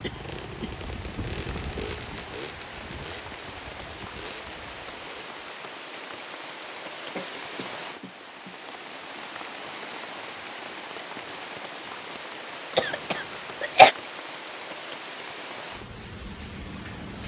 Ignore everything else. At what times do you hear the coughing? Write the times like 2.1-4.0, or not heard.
0.0-0.8, 7.2-8.7, 12.8-13.9.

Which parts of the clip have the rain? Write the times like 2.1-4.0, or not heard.
0.0-17.2.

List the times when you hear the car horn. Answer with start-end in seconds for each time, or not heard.
not heard.